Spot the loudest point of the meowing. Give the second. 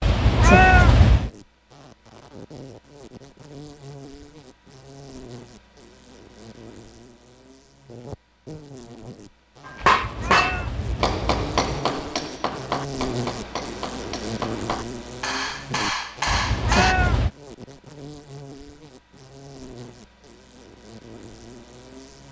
1 s.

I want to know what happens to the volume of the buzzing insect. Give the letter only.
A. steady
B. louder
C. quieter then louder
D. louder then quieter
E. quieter
D.